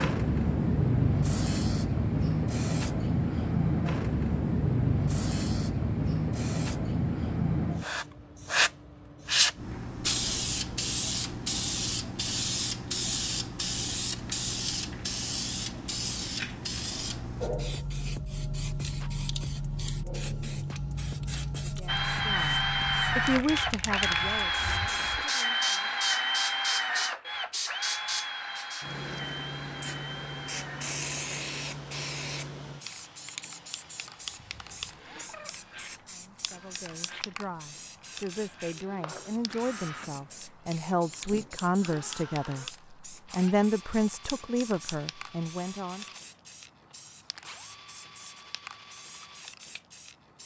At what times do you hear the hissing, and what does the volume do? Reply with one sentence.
You can hear the hissing from 0.0 to 50.4 s, getting quieter.